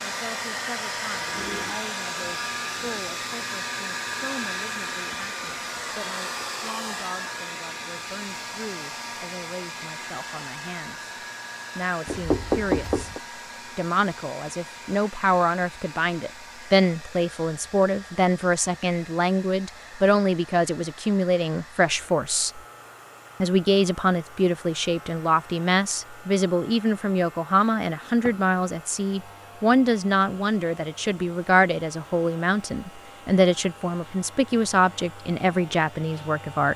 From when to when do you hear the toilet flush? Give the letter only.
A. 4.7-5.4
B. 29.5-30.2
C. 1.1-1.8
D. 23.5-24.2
C.